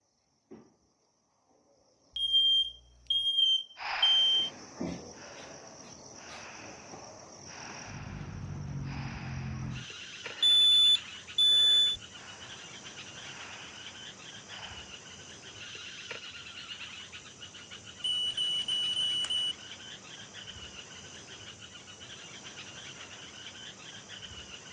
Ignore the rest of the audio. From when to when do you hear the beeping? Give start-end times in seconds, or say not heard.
2.1-4.5, 10.4-12.0, 18.2-19.5.